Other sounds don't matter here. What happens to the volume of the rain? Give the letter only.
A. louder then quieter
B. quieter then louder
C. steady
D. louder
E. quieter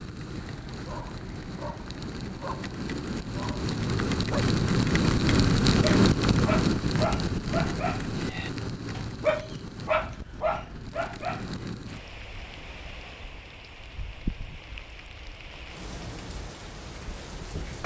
A.